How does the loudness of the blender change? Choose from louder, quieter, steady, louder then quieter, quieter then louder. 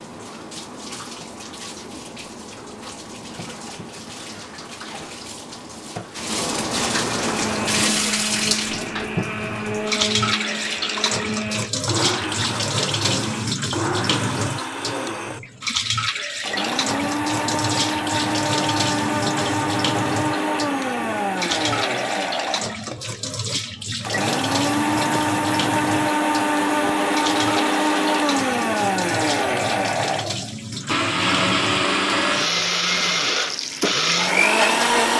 louder.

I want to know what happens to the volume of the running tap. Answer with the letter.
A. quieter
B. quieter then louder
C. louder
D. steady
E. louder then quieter
E.